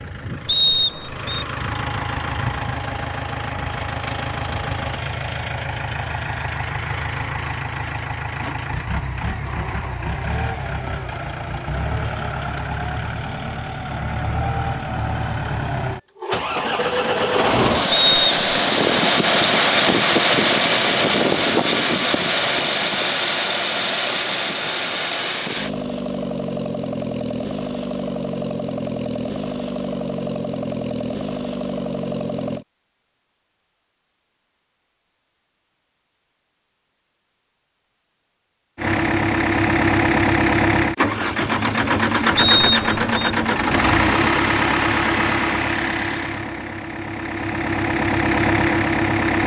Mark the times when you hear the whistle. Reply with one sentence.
The whistle can be heard from 0.5 to 1.4 s, from 17.9 to 18.6 s and from 42.4 to 43.3 s.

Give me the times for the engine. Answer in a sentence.
The engine can be heard from 0.0 to 32.6 s and from 38.8 to 49.4 s.